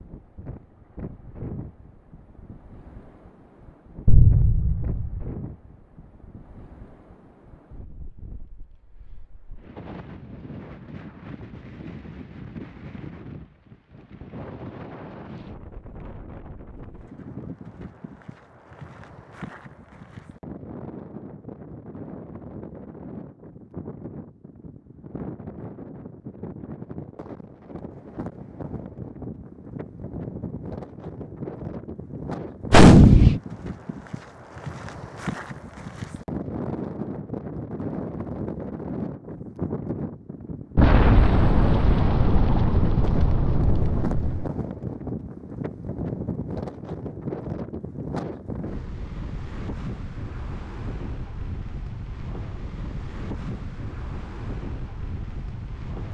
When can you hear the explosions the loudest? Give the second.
33 s.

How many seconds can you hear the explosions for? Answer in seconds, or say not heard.
6 s.